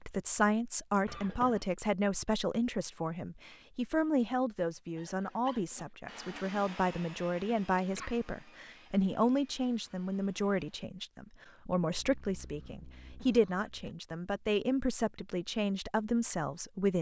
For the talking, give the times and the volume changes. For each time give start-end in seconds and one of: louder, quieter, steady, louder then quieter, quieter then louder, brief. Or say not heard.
0.1-16.9 steady.